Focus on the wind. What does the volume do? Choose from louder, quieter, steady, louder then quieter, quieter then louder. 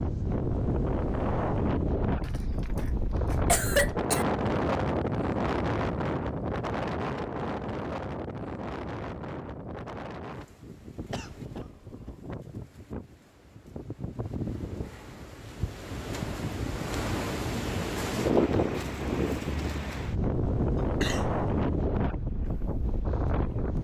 quieter then louder.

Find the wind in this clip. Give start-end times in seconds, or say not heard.
0.0-23.8.